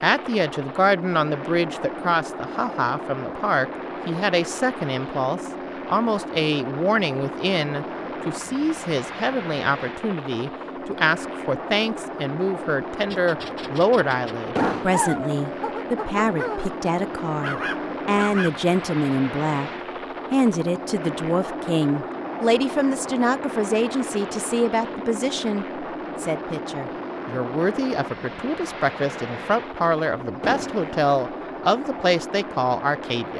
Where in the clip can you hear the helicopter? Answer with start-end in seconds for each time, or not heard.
0.0-33.3.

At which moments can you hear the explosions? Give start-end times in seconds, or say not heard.
14.6-15.1, 30.4-30.9.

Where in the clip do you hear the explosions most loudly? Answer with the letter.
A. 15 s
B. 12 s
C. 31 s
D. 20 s
A.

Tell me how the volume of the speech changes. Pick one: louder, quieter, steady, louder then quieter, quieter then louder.
steady.